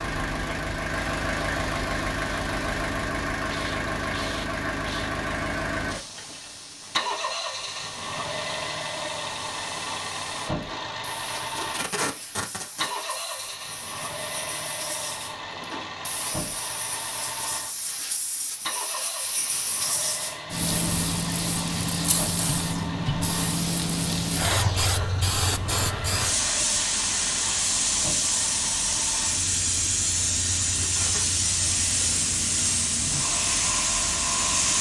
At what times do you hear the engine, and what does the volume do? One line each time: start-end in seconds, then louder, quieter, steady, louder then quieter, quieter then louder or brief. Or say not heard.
0.0-34.7 quieter.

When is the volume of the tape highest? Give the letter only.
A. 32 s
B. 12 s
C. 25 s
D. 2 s
B.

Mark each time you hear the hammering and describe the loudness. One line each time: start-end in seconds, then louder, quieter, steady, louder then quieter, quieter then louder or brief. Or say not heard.
not heard.